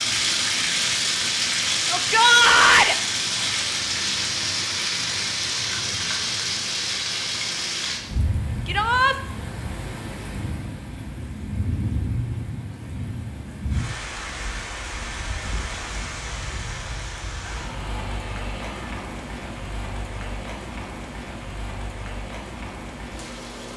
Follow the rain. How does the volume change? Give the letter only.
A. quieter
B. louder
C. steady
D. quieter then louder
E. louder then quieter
A.